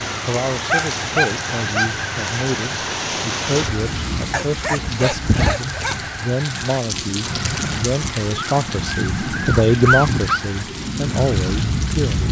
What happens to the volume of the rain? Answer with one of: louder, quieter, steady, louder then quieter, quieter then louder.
steady.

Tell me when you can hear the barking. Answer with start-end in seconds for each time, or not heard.
0.7-1.9, 4.3-6.1, 8.3-10.4.